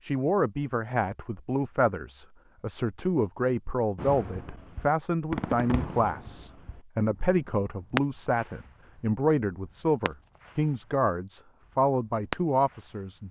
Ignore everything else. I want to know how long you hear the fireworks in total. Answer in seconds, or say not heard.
9 s.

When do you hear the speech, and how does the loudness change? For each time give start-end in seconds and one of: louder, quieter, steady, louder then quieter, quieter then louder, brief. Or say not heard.
0.0-13.2 steady.